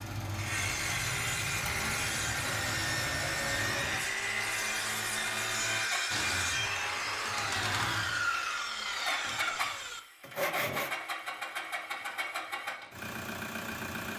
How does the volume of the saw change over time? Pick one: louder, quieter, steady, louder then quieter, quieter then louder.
steady.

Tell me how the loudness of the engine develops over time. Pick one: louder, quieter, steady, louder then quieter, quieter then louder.
steady.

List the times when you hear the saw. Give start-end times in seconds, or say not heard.
0.3-10.9.